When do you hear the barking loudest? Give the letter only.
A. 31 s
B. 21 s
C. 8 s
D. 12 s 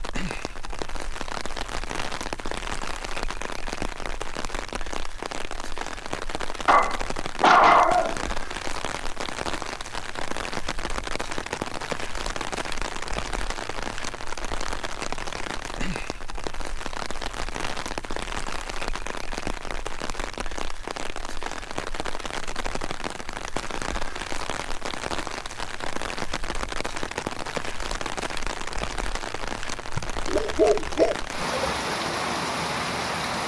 C.